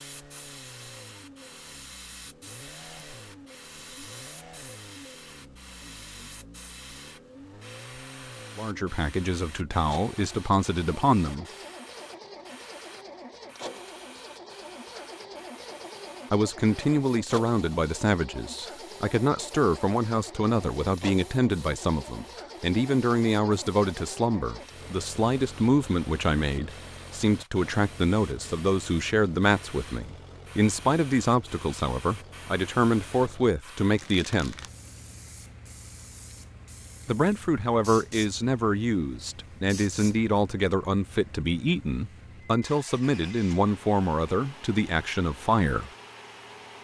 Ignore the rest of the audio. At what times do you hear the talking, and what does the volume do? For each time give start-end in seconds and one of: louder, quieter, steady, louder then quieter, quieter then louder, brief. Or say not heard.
8.6-11.4 brief
16.3-34.6 steady
37.0-45.9 steady.